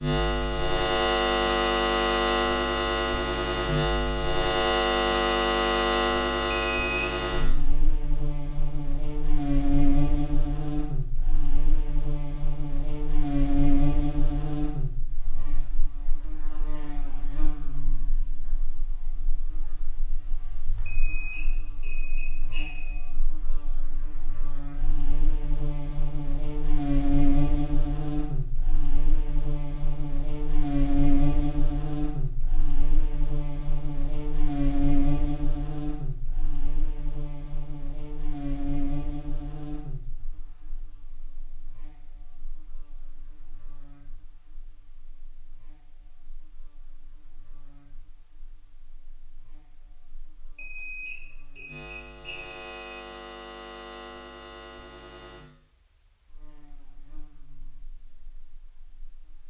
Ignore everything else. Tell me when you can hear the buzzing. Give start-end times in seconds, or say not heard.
0.0-59.4.